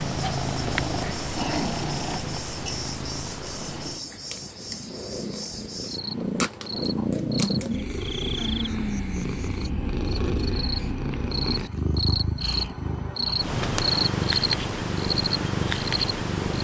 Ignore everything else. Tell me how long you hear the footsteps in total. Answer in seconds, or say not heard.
not heard.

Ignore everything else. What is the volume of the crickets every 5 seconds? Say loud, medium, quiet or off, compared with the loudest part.
medium, medium, loud, off.